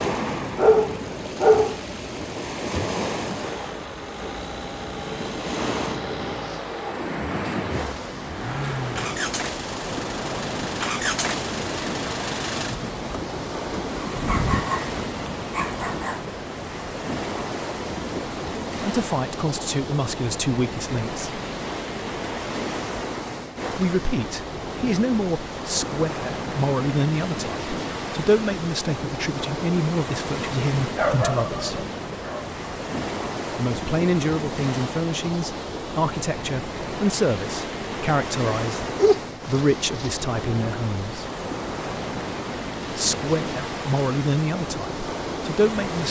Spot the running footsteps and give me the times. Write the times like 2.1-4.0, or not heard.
not heard.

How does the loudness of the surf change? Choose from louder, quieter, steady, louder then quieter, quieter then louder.
steady.